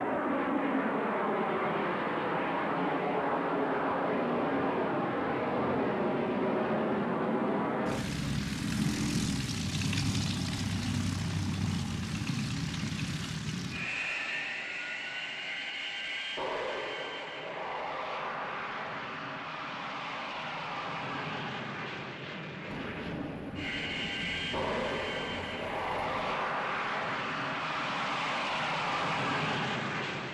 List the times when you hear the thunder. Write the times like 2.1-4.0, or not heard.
22.6-26.4.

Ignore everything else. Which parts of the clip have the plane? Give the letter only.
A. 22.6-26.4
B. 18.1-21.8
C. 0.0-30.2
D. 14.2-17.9
C.